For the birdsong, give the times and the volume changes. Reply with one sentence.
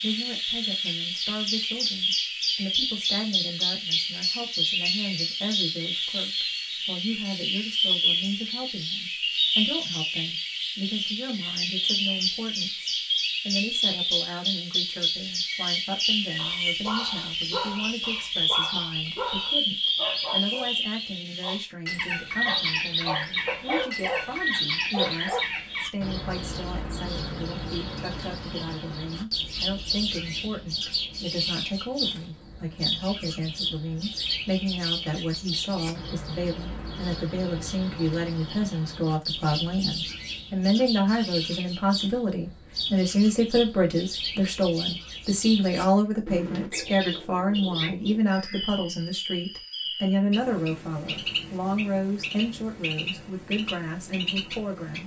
You can hear the birdsong from 0.0 to 55.0 s, getting quieter.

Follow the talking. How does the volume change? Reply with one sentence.
The volume of the talking goes up.